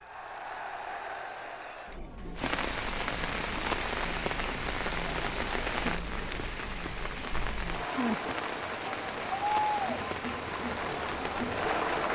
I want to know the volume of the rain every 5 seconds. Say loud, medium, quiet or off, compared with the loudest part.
loud, loud, medium.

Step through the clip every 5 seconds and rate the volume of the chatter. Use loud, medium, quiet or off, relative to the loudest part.
medium, loud, loud.